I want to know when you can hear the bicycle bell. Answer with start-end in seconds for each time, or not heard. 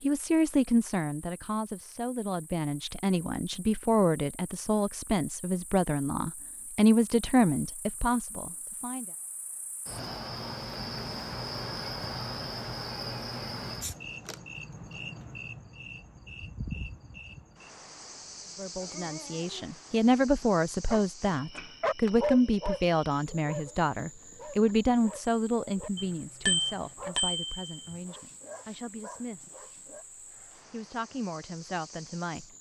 25.9-27.8.